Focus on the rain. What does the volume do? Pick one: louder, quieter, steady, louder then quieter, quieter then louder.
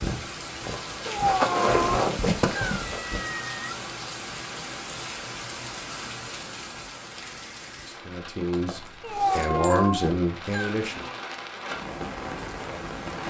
quieter then louder.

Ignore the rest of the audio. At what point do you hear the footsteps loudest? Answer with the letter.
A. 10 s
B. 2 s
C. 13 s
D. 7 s
B.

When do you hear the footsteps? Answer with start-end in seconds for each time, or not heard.
0.0-3.2.